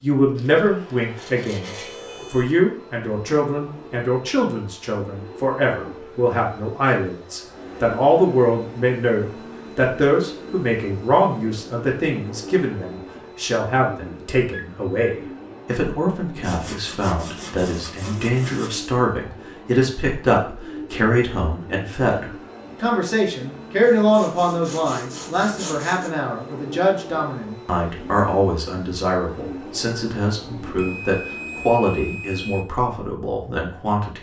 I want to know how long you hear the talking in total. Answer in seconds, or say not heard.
34 s.